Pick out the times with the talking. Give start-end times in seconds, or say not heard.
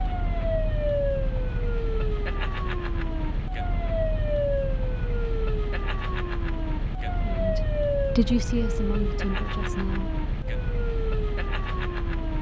7.2-10.2.